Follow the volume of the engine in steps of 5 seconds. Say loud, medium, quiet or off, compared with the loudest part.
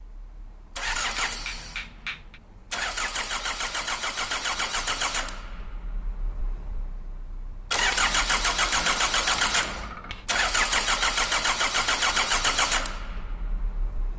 medium, loud, loud.